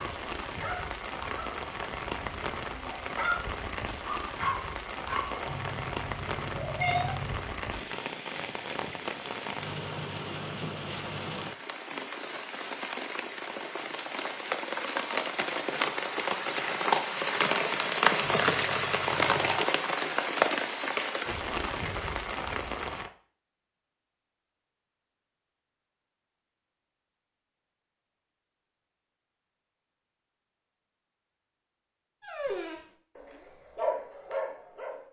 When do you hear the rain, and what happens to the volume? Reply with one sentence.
The rain can be heard from 0.0 to 23.1 s, getting louder.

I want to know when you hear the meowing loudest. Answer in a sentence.
The volume of the meowing peaks at 7 seconds.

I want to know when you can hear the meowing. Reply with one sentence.
The meowing can be heard from 5.5 to 7.5 s and from 18.2 to 19.6 s.